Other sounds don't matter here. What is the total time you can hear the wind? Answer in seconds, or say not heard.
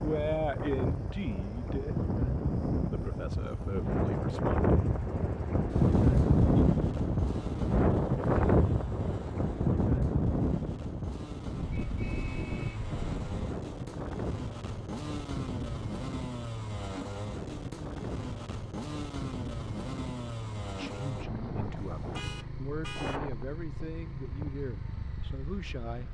26 s.